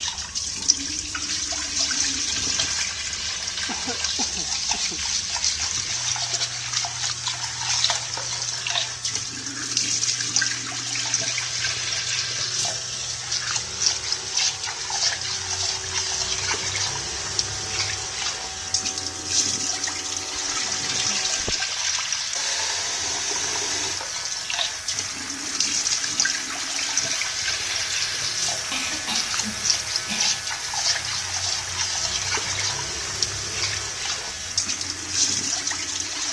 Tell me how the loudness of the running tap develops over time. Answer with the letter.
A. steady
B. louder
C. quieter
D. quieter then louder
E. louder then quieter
A.